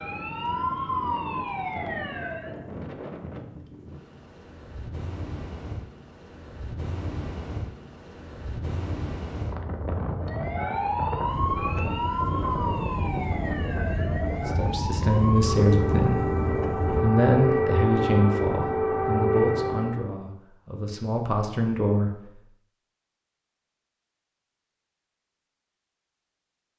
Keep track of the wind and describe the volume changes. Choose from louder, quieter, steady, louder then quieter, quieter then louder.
louder.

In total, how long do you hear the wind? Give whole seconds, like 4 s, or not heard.
17 s.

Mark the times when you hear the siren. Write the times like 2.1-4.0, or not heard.
0.0-2.6, 10.2-20.1.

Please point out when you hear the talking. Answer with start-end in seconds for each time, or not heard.
14.4-22.2.